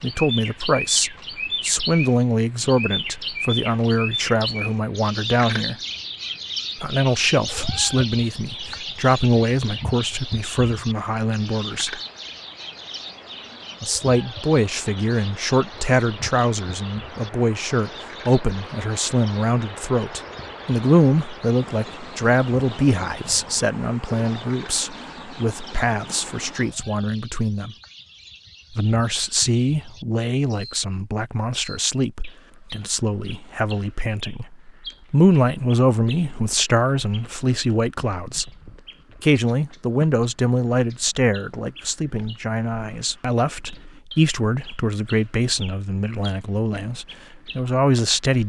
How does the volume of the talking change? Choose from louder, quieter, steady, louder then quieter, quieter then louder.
steady.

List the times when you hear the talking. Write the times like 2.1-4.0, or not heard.
0.0-5.8, 6.8-12.0, 13.8-27.8, 28.7-38.5, 39.2-48.4.